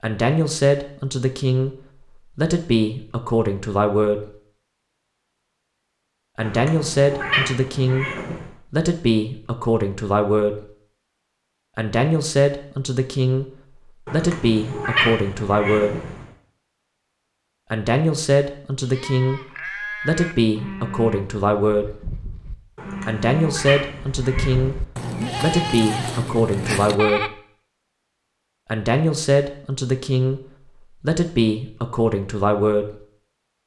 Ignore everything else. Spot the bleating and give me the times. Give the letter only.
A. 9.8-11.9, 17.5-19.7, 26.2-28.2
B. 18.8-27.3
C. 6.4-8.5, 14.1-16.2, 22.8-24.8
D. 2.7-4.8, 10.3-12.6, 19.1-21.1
B.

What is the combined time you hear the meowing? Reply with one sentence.
The meowing can be heard for 6 seconds in total.